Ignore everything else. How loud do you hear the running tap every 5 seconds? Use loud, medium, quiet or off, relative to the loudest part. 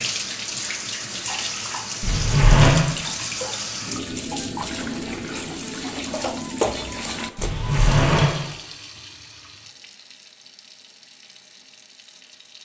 loud, loud, quiet.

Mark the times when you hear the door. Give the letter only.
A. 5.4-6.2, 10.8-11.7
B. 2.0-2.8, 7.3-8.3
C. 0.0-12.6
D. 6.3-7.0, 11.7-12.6
B.